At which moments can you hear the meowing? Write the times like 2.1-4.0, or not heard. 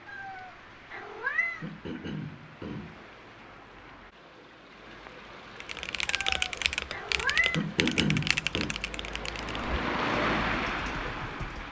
0.1-1.6, 6.0-7.7.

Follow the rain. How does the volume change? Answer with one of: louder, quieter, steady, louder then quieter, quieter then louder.
louder.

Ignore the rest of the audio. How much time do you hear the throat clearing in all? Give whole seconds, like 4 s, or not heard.
3 s.